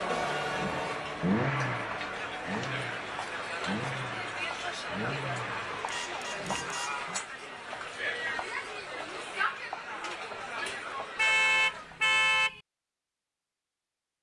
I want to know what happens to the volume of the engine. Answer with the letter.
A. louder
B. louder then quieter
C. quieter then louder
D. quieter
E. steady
D.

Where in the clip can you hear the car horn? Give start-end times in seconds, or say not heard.
0.1-1.0, 5.8-7.0, 11.2-12.6.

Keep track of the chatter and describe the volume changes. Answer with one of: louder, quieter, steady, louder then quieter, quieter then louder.
steady.